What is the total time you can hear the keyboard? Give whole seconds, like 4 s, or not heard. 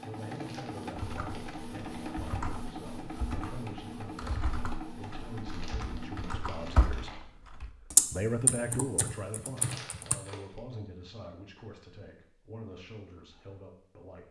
9 s.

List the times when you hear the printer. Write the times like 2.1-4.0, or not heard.
0.0-7.2.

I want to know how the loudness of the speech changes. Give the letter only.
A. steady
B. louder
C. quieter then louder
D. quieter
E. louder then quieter
E.